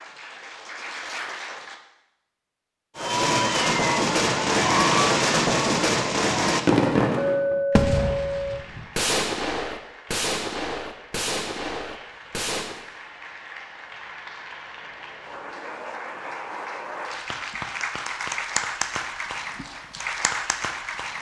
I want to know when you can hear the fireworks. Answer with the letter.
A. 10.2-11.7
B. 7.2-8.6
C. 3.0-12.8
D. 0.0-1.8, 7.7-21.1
C.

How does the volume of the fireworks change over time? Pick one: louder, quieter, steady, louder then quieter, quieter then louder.
quieter.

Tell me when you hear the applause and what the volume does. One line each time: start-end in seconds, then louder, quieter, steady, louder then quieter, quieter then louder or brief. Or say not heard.
0.0-1.8 brief
7.7-21.1 louder.